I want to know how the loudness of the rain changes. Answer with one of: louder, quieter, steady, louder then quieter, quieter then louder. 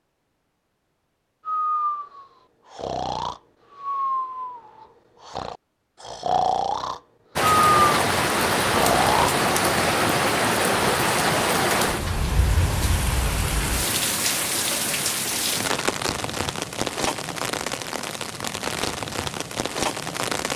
quieter.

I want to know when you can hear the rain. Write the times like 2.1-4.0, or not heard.
7.3-20.5.